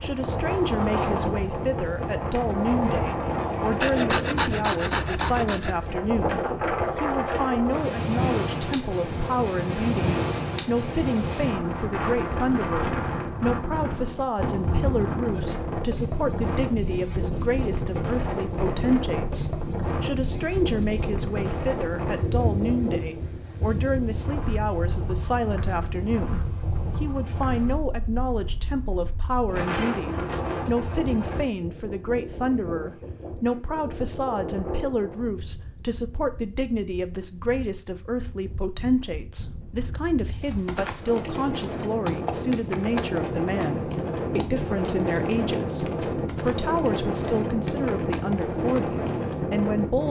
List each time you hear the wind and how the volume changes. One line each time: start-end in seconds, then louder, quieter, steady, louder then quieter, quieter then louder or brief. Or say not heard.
0.0-50.0 quieter then louder.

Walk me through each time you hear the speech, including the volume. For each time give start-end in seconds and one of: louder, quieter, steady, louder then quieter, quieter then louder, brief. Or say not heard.
0.0-50.0 steady.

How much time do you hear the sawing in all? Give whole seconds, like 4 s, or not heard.
2 s.